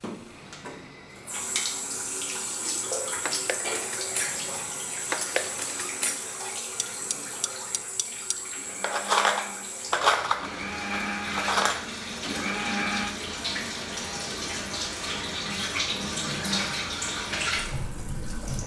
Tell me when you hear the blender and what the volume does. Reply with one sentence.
The blender can be heard from 0.2 to 13.2 s, getting louder.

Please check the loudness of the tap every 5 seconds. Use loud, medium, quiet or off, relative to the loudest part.
loud, medium, loud, loud.